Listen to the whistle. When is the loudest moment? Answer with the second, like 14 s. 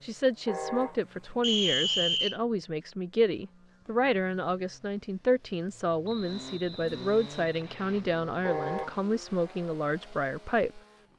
2 s.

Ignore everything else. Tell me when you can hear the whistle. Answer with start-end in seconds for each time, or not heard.
1.4-2.4, 6.0-8.1.